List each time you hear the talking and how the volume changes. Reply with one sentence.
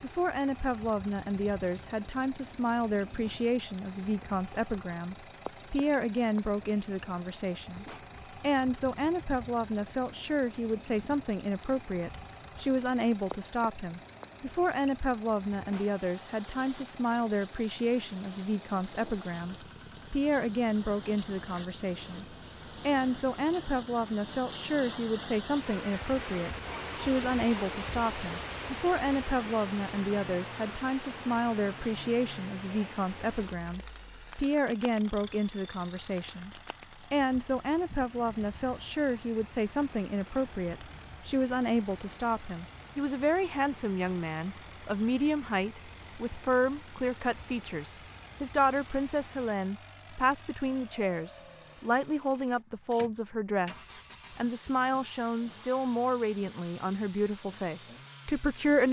The talking can be heard from 0.0 to 58.8 s, at a steady volume.